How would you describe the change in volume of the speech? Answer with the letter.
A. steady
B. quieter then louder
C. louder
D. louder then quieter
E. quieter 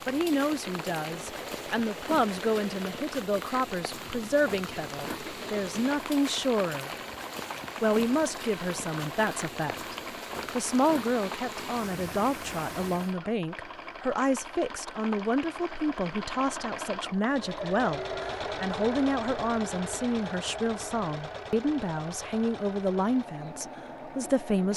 A.